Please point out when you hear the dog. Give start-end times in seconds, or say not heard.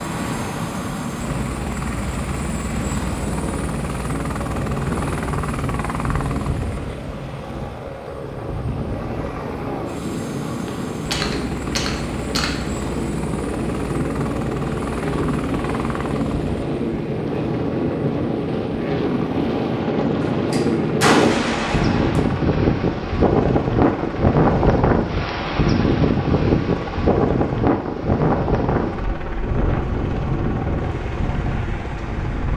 not heard.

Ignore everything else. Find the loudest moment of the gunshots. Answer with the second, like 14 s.
21 s.